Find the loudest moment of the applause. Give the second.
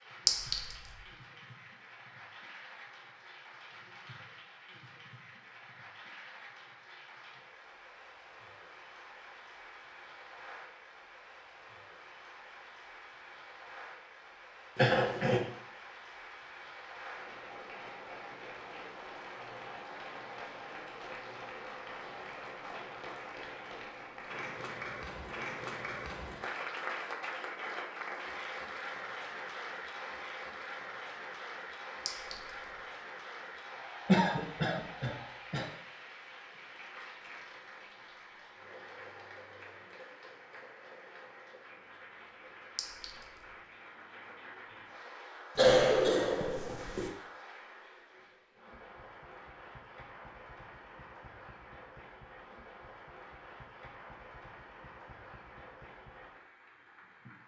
27 s.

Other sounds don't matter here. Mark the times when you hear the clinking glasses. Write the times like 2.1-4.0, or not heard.
0.2-0.9, 32.0-32.8, 42.8-43.5.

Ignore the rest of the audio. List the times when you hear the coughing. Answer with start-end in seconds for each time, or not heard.
14.8-15.4, 34.0-35.6, 45.5-47.1.